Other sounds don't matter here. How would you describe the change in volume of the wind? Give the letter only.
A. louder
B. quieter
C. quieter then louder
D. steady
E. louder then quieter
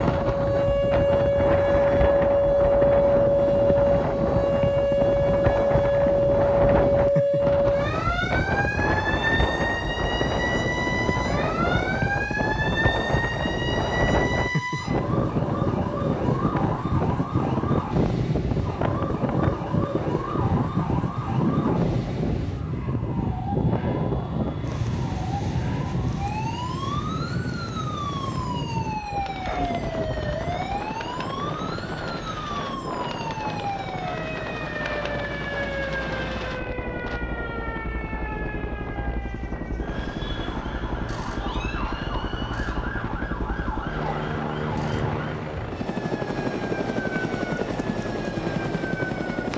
B.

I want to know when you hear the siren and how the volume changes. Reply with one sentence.
You can hear the siren from 0.0 to 49.5 s, getting quieter.